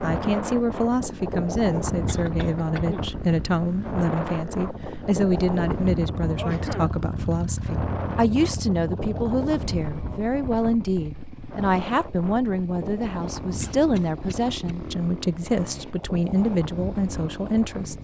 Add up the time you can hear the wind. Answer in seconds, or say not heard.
18 s.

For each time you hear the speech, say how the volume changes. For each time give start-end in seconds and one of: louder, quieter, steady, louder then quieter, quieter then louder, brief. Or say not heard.
0.0-17.9 steady.